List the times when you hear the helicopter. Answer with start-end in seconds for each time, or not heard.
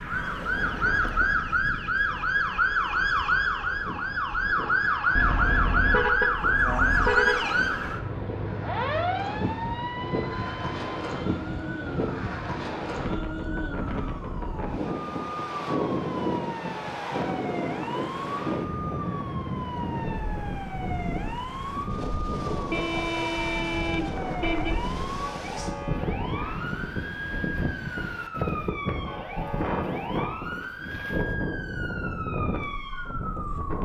not heard.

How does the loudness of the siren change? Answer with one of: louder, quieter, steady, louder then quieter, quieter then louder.
quieter.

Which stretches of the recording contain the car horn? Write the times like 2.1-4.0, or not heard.
5.2-7.4, 22.7-24.8.